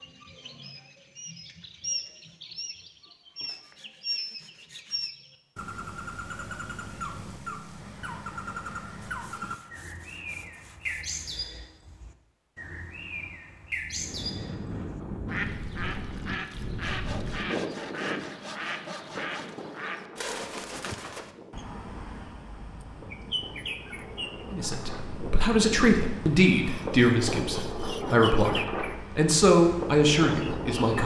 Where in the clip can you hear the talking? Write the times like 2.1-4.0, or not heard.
24.5-31.0.